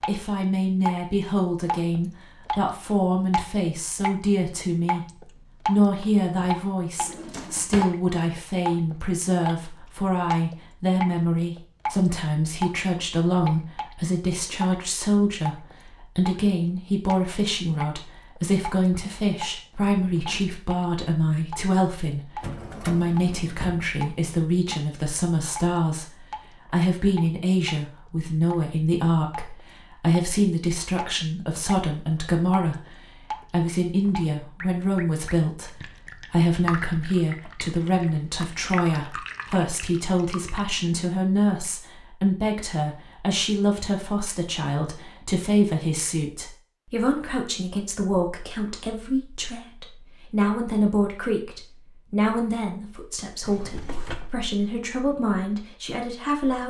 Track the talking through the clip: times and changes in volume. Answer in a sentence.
The talking can be heard from 0.1 to 56.6 s, at a steady volume.